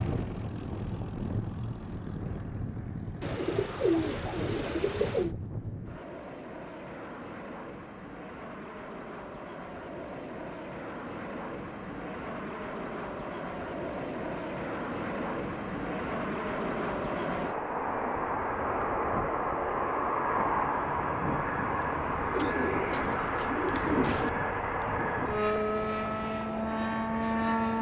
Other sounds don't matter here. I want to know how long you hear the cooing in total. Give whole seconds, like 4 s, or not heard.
4 s.